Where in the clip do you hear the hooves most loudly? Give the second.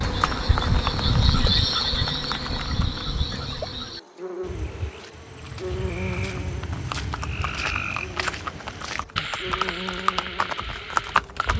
11 s.